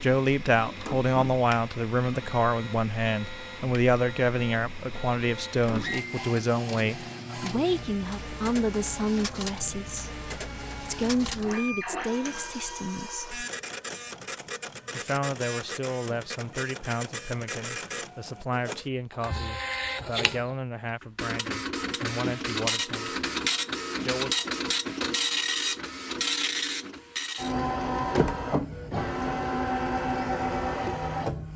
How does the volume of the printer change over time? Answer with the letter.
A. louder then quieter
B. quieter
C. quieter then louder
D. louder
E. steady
D.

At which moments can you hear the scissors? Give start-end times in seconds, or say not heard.
not heard.